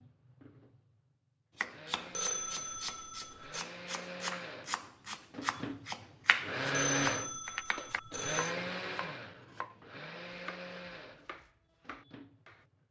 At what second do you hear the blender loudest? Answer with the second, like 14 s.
7 s.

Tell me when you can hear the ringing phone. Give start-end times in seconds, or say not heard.
2.1-3.7, 7.0-8.6.